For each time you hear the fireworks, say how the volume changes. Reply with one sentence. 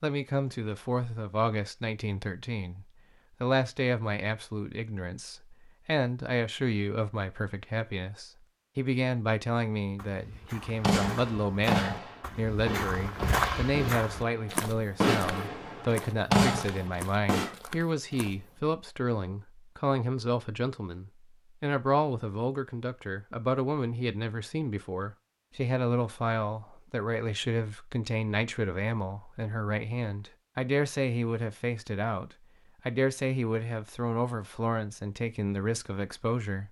The fireworks can be heard from 10.8 to 17.6 s, getting quieter then louder.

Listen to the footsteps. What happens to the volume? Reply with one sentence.
The loudness of the footsteps goes up, then down.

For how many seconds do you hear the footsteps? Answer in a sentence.
The footsteps can be heard for 9 seconds in total.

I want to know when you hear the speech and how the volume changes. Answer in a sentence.
The speech can be heard from 0.0 to 36.6 s, at a steady volume.